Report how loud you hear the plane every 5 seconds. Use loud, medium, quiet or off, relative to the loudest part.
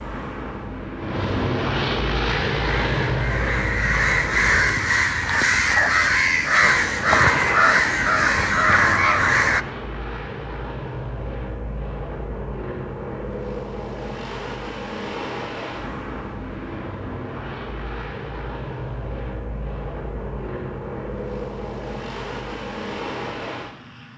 loud, medium, medium, medium, medium.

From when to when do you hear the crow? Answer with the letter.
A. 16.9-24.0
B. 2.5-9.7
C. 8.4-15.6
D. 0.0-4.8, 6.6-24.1
B.